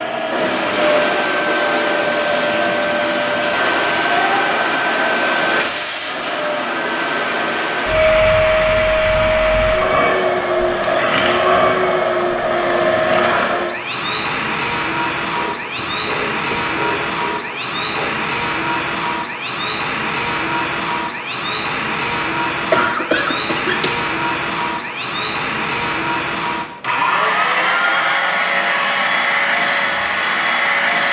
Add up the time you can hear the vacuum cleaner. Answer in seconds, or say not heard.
31 s.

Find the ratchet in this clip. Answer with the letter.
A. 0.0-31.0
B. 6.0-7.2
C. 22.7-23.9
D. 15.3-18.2
D.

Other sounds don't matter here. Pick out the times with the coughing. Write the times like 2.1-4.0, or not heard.
22.7-23.9.